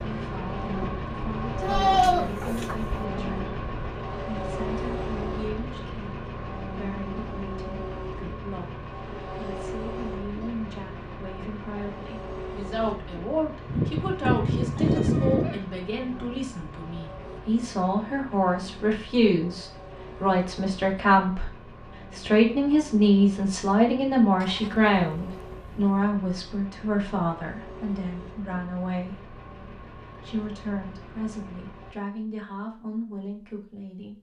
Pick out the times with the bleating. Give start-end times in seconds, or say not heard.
1.6-3.0, 13.7-15.6, 24.4-25.9.